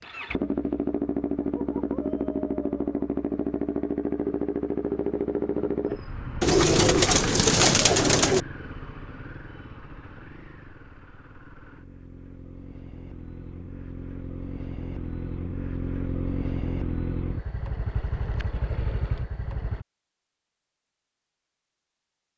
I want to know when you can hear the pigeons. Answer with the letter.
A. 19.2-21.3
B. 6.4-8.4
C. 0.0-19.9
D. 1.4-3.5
B.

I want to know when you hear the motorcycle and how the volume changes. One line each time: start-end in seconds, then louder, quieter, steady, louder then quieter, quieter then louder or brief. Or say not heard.
0.0-19.9 quieter then louder.